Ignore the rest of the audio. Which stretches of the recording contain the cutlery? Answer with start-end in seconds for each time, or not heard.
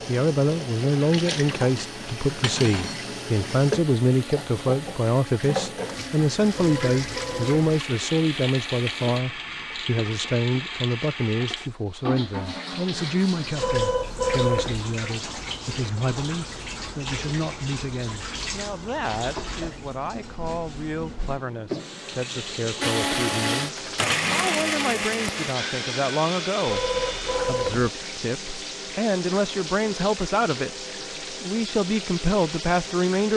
2.4-3.0, 24.1-24.6.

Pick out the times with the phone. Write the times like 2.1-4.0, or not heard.
6.6-7.7, 13.6-14.8, 26.6-27.9.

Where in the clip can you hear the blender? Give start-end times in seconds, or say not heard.
0.2-9.2, 22.8-27.6.